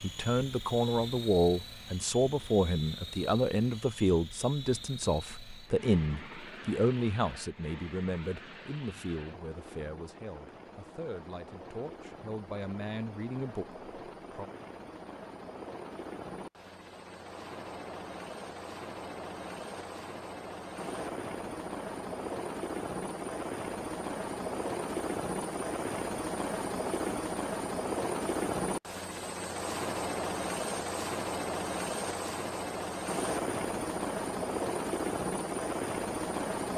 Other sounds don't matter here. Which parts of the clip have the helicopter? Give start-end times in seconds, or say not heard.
0.0-36.7.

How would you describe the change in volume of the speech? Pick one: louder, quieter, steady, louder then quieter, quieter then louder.
quieter.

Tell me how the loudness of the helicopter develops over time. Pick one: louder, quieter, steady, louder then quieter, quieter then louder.
louder.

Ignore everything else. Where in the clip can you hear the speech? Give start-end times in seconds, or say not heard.
0.0-14.5.